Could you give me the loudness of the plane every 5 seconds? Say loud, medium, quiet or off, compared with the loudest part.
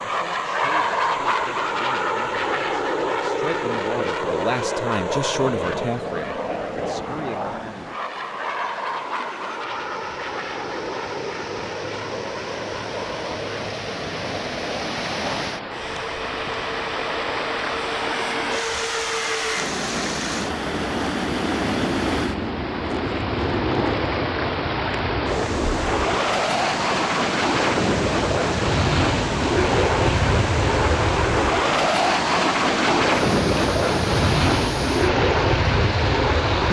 loud, medium, medium, medium, medium, loud, loud, loud.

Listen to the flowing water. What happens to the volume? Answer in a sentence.
The loudness of the flowing water goes up.